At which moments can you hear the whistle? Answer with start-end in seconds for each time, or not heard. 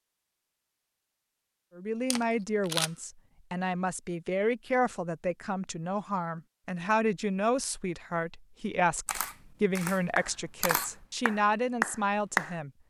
not heard.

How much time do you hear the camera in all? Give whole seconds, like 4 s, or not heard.
3 s.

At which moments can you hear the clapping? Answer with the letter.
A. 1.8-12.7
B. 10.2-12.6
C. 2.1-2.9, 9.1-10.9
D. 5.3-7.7
B.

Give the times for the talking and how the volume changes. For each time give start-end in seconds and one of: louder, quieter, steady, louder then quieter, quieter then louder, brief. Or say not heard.
1.8-12.7 steady.